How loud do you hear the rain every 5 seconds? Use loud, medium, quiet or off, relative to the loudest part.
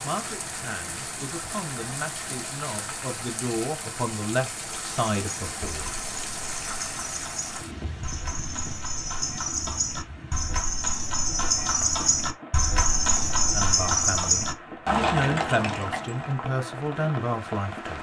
loud, loud, medium, loud.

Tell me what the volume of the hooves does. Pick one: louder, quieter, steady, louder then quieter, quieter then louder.
louder.